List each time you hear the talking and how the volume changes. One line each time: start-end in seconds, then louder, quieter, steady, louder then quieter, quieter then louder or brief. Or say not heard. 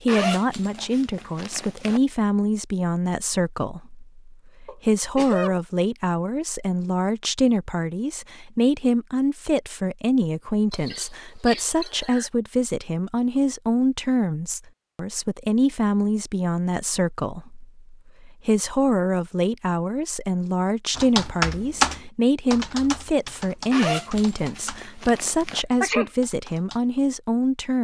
0.0-27.7 steady.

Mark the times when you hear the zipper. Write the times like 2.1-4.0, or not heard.
0.1-2.0, 23.7-25.6.